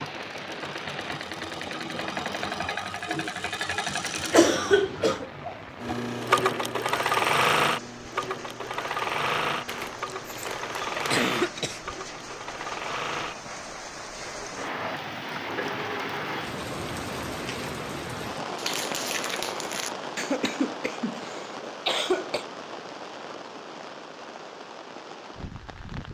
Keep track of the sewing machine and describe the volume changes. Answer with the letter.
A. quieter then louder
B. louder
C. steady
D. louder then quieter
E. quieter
D.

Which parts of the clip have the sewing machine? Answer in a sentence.
The sewing machine can be heard from 0.0 to 16.4 s.